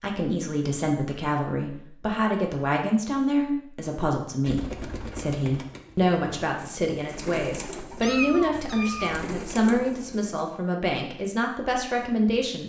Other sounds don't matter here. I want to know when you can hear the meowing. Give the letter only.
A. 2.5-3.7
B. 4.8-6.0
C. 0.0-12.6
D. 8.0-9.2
D.